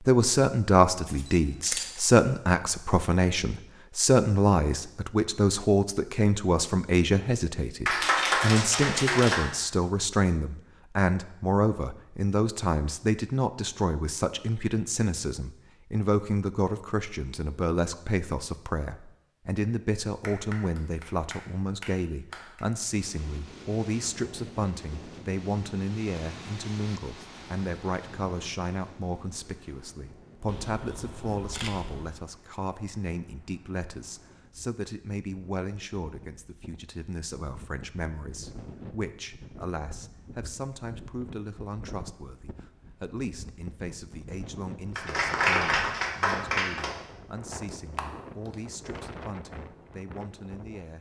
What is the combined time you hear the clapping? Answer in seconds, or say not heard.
6 s.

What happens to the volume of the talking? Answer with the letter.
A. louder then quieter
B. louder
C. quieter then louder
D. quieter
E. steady
D.